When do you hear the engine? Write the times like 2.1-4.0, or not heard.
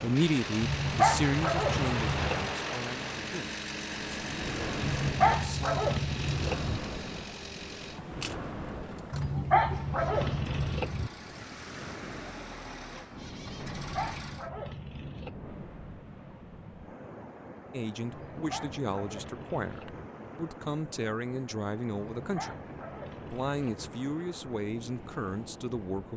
0.0-14.5.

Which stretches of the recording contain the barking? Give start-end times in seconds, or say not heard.
0.6-2.5, 4.8-6.8, 9.1-11.1, 13.6-15.3, 18.1-20.1, 21.9-23.9.